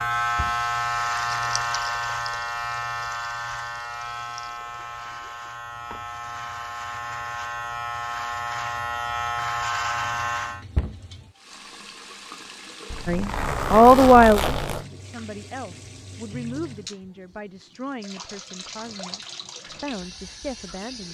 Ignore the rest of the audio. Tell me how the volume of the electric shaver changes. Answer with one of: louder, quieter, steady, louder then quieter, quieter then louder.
quieter then louder.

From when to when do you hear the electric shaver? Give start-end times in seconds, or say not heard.
0.0-10.7.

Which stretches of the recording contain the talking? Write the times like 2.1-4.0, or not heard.
13.1-21.0.